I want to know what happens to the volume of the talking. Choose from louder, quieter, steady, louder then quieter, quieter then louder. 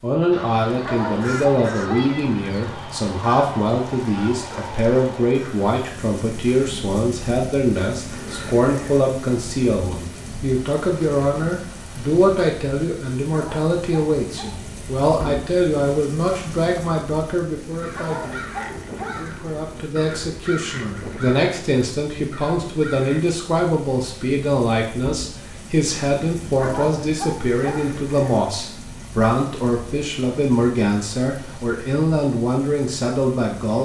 steady.